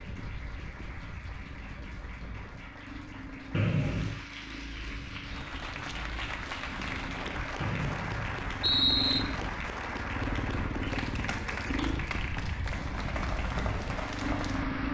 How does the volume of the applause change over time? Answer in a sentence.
The volume of the applause goes up.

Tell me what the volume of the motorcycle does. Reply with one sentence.
The volume of the motorcycle goes up.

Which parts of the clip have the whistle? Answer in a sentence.
You can hear the whistle from 3.5 to 4.2 s and from 7.6 to 9.2 s.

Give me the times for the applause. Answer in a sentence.
You can hear the applause from 0.0 to 14.8 s.